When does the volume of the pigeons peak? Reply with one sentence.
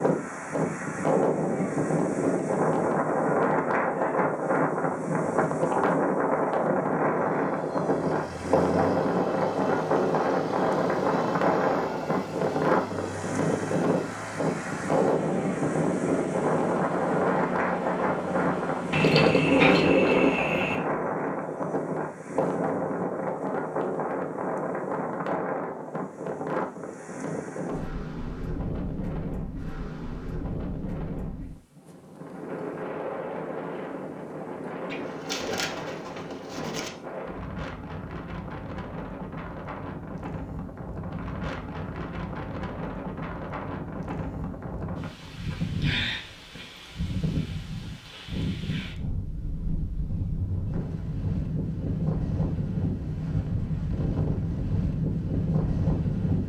The volume of the pigeons peaks at 20 seconds.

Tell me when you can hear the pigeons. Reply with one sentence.
The pigeons can be heard from 18.9 to 20.8 s and from 34.9 to 36.9 s.